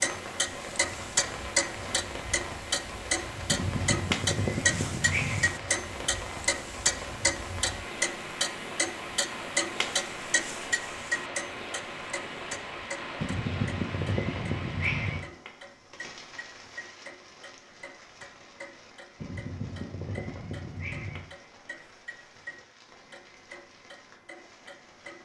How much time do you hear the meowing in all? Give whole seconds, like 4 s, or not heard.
6 s.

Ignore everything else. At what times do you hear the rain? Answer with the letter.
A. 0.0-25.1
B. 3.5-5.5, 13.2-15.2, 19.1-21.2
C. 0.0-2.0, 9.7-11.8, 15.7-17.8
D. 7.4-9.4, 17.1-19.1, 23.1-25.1
A.